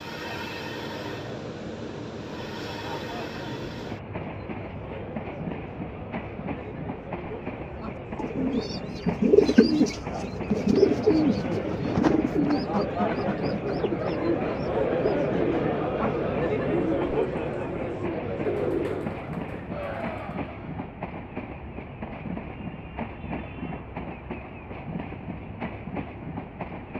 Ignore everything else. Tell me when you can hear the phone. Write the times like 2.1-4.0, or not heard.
not heard.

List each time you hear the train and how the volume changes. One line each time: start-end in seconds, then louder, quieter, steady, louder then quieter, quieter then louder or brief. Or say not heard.
0.0-26.9 steady.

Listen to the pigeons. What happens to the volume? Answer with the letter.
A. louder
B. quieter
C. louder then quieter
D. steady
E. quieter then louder
B.